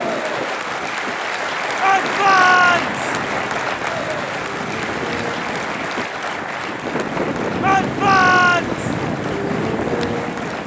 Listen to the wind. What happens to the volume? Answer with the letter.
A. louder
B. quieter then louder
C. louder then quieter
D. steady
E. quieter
A.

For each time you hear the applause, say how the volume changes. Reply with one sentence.
You can hear the applause from 0.0 to 10.6 s, getting quieter.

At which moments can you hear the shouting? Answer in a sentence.
The shouting can be heard from 1.8 to 3.0 s and from 7.6 to 8.8 s.